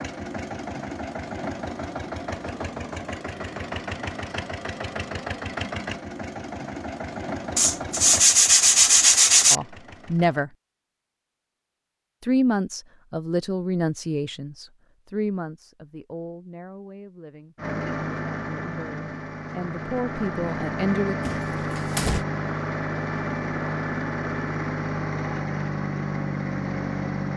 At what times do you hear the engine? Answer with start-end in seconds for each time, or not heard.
0.0-10.4, 17.6-27.3.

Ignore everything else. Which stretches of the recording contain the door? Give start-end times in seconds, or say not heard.
21.2-22.2.